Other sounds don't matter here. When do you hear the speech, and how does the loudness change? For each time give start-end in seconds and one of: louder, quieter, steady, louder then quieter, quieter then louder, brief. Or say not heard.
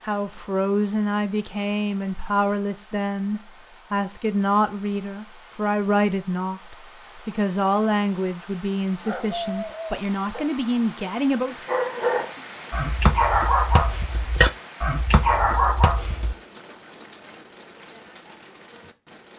0.1-11.6 steady.